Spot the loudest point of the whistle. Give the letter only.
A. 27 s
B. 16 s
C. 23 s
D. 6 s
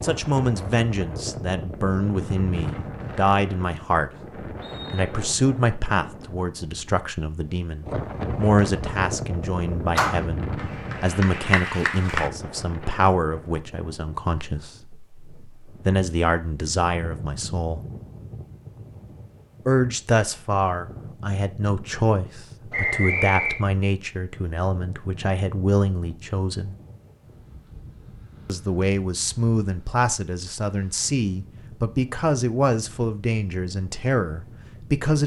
C.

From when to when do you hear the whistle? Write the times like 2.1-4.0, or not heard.
4.6-5.2, 22.7-23.6.